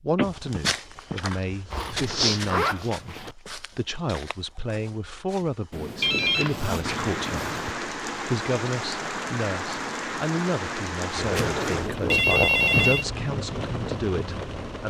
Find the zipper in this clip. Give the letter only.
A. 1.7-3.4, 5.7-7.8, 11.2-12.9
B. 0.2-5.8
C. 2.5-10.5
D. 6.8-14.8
A.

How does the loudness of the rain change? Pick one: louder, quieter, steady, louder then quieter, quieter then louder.
steady.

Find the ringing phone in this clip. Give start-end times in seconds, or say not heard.
0.1-1.1, 6.0-7.0, 11.3-13.1.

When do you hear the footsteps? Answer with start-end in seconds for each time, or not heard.
0.2-5.8.